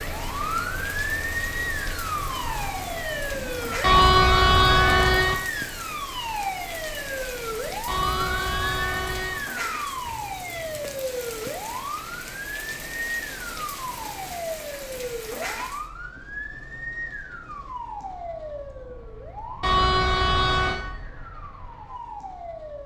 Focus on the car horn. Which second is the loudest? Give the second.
4 s.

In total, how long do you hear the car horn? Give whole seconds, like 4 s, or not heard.
4 s.